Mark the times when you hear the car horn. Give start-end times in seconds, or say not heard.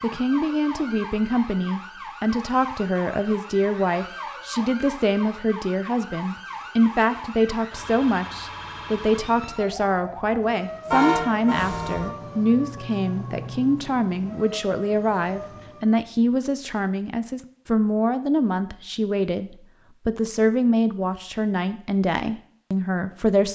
10.9-12.1.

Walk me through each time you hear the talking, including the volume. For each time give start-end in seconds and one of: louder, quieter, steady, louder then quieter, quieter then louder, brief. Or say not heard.
0.0-23.5 steady.